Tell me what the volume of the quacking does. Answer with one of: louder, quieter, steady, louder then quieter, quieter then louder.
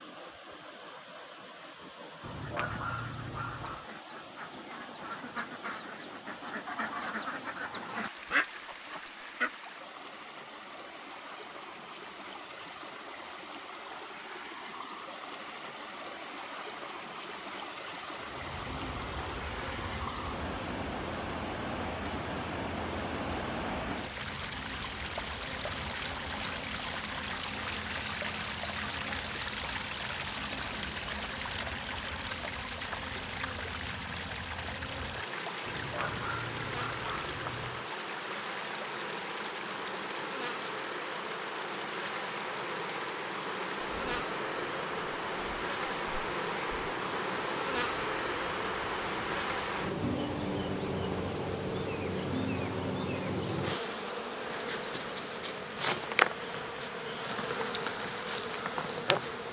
louder.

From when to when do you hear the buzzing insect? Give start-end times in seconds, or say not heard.
18.1-59.4.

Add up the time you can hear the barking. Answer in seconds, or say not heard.
4 s.